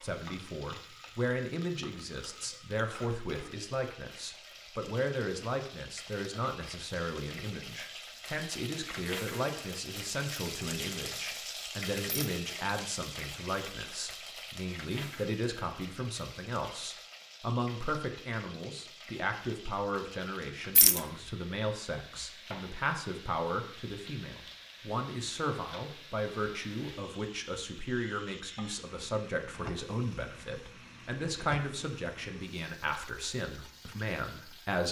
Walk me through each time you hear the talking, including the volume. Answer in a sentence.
The talking can be heard from 0.0 to 34.8 s, at a steady volume.